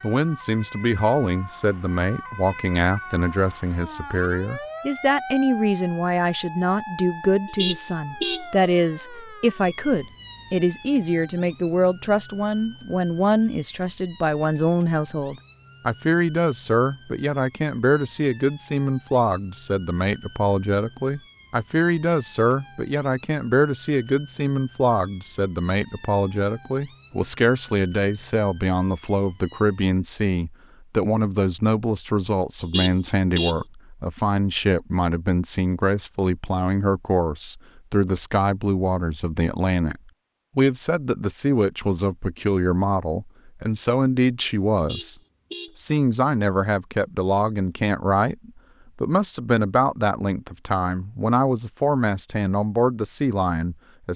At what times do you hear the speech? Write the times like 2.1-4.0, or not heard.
0.0-45.1, 45.8-54.1.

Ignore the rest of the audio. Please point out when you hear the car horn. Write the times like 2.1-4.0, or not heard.
7.5-8.4, 32.6-33.6, 44.8-45.8.